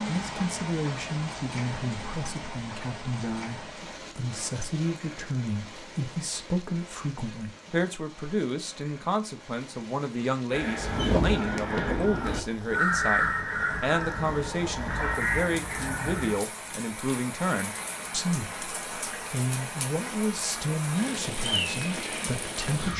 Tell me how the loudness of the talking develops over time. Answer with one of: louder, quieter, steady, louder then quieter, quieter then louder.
steady.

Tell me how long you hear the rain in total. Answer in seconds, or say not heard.
23 s.